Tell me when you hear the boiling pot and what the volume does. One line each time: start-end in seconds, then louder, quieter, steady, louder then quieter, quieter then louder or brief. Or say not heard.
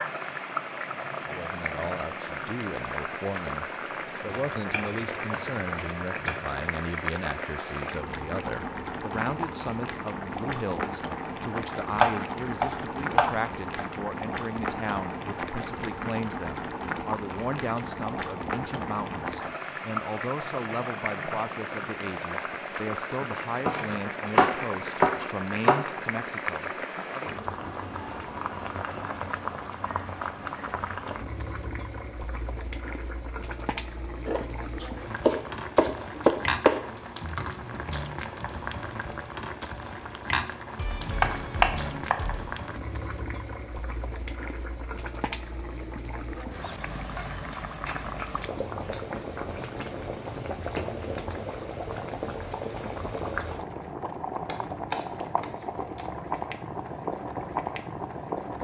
0.0-58.5 steady.